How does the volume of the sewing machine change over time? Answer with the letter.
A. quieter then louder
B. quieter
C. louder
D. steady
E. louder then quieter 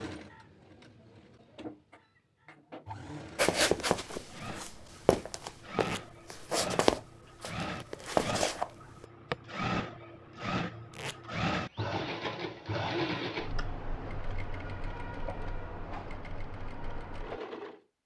E.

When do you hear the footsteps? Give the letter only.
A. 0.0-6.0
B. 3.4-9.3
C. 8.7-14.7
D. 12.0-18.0
B.